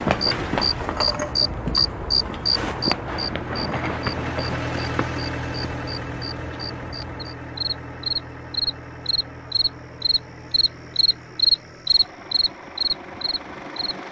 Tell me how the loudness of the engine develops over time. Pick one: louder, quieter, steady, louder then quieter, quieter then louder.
louder then quieter.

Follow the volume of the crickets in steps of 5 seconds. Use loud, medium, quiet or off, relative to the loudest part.
loud, medium, loud.